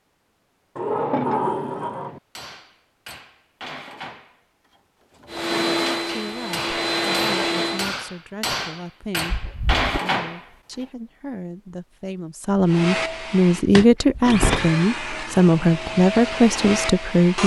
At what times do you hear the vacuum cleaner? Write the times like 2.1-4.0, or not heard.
5.2-7.9, 12.7-17.4.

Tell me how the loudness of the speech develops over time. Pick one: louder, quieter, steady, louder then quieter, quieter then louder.
louder.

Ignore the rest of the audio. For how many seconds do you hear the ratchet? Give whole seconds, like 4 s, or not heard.
not heard.